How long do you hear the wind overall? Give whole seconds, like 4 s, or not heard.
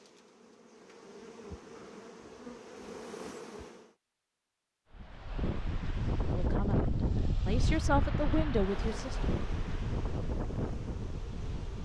7 s.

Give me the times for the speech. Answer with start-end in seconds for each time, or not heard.
6.3-9.3.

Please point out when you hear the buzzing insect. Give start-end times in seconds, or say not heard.
0.0-4.0, 8.7-11.8.